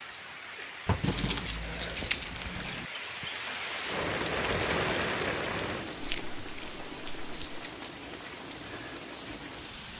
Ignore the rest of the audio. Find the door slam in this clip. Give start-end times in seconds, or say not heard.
not heard.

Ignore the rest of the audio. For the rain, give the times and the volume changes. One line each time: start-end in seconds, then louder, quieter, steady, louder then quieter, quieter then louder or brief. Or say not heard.
0.0-9.9 louder then quieter.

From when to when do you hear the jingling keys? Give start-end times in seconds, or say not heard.
0.8-2.9, 6.0-7.6.